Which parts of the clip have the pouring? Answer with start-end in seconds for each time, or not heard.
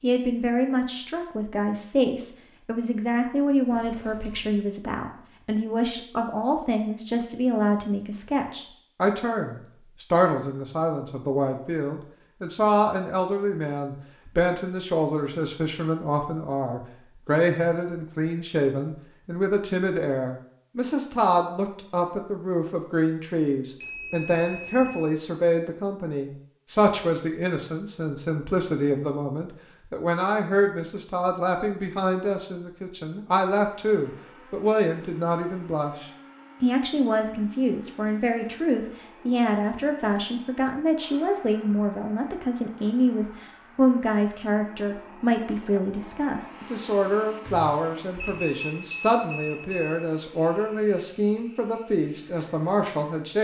not heard.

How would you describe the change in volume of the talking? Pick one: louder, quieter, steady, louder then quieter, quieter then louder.
steady.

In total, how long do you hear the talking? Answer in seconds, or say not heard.
53 s.